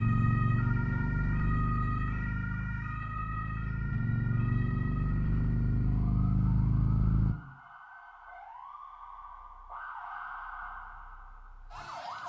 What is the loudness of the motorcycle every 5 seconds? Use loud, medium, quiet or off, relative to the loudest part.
loud, loud, off.